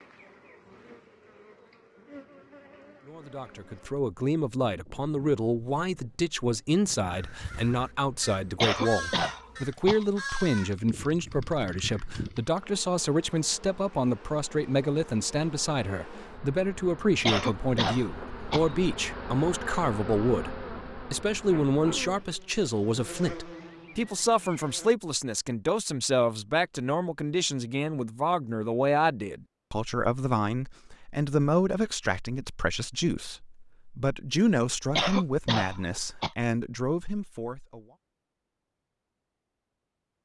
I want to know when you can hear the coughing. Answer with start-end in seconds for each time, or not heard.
8.6-10.1, 17.2-18.7, 35.0-36.3.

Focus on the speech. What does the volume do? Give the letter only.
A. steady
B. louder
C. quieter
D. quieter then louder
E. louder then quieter
A.